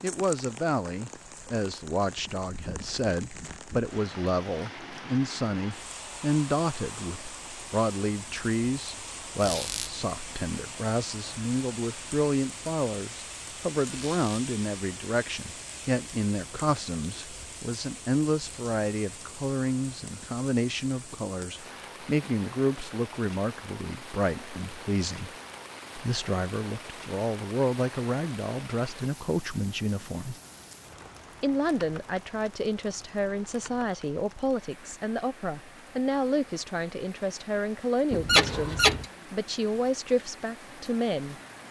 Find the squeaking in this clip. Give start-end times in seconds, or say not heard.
9.4-9.9, 13.9-14.4, 38.1-39.0.